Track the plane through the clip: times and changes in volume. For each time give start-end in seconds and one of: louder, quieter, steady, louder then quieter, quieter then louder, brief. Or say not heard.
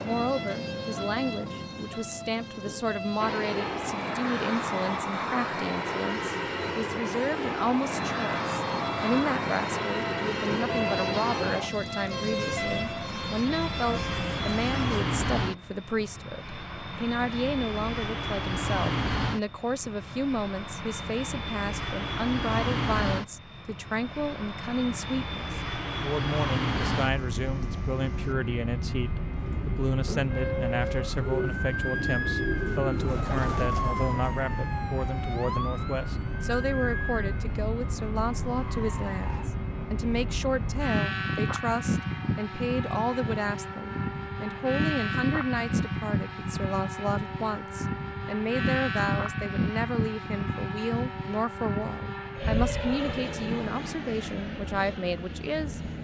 3.2-55.9 steady.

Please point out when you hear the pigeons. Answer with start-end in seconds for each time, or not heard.
29.4-34.5.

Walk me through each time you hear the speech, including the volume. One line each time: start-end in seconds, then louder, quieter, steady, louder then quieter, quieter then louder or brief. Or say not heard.
0.0-55.8 steady.